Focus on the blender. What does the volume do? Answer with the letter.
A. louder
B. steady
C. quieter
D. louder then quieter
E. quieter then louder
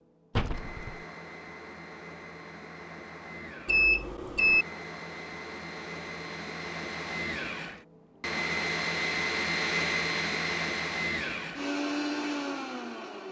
A.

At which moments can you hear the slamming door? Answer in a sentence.
You can hear the slamming door from 0.3 to 1.0 s.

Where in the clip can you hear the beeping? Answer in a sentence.
The beeping can be heard from 3.6 to 4.7 s.